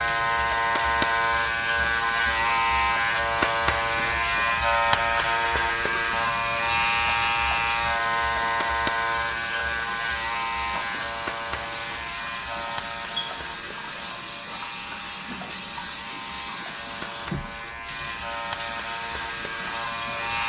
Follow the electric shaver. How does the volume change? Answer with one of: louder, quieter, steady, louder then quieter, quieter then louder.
quieter.